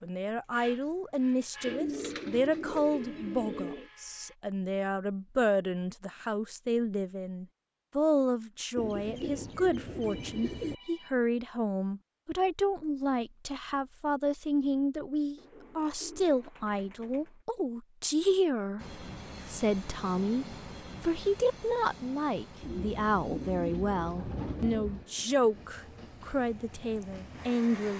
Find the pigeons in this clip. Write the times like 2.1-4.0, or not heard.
1.6-3.9, 8.8-10.8, 15.3-17.4, 22.6-25.1.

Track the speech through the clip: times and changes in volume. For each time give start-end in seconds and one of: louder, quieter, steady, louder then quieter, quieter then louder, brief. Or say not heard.
0.0-27.9 steady.